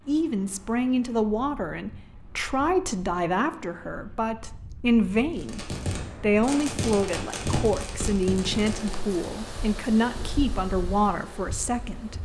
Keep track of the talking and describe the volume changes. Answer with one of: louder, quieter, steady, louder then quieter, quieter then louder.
steady.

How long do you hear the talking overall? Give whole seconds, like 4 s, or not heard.
12 s.